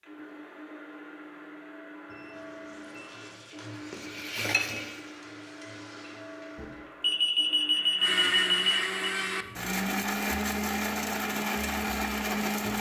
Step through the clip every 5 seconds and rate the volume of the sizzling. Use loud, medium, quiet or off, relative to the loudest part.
loud, quiet, off.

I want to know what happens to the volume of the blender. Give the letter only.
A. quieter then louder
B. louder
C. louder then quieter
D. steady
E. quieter
B.